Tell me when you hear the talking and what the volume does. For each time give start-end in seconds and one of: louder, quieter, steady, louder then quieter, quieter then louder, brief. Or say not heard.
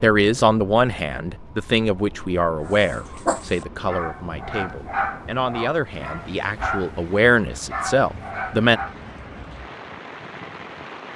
0.0-8.8 quieter then louder.